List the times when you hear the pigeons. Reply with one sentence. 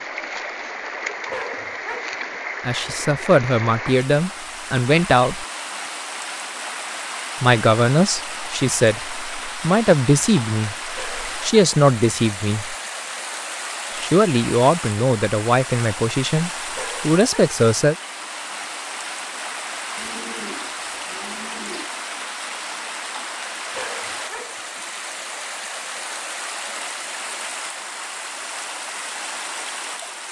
You can hear the pigeons from 19.9 to 21.9 s.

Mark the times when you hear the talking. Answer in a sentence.
You can hear the talking from 2.6 to 5.5 s, from 7.4 to 12.8 s and from 13.9 to 17.9 s.